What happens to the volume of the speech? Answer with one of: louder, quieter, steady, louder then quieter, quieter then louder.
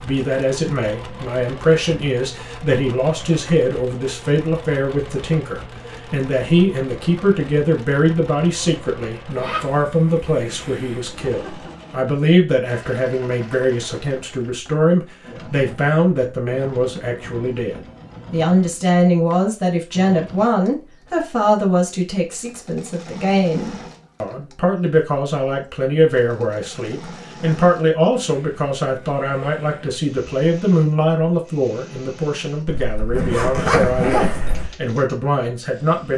steady.